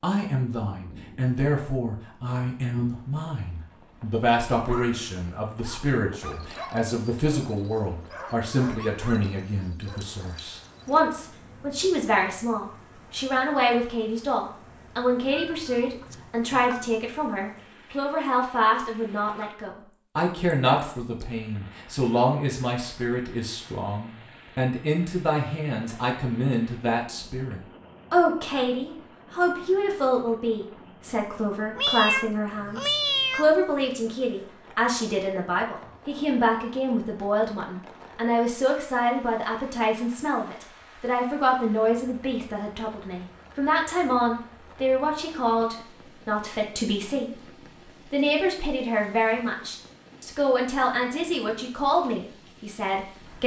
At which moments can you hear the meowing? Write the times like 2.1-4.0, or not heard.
15.3-16.9, 31.8-33.5.